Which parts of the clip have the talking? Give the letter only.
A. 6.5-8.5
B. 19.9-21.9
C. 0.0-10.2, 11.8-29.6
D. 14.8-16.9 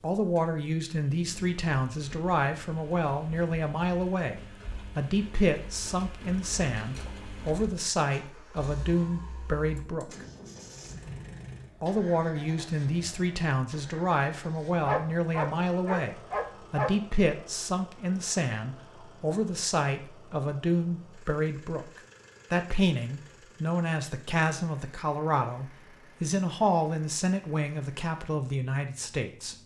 C.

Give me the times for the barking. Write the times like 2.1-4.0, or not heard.
14.8-16.9.